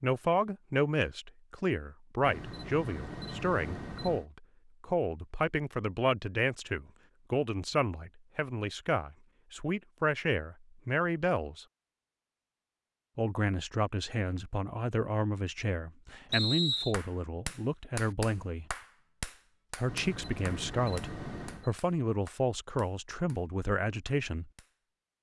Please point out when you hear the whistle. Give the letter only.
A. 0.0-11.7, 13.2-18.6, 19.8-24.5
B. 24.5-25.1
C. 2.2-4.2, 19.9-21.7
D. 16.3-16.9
D.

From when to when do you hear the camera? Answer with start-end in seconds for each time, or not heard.
2.2-4.2, 19.9-21.7.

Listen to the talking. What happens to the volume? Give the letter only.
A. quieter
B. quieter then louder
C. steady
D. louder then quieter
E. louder
C.